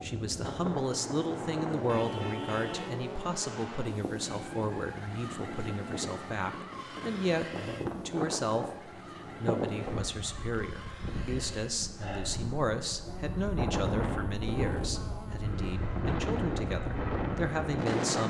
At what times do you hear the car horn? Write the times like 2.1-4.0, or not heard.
1.9-3.0.